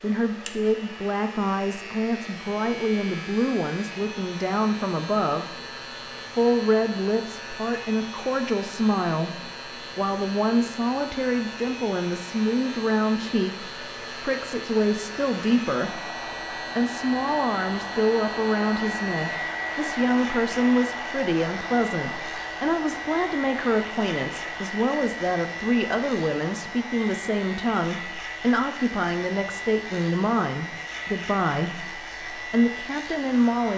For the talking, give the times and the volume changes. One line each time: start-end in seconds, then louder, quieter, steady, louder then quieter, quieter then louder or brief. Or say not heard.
0.0-5.5 steady
6.3-33.7 steady.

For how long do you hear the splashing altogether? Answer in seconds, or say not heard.
not heard.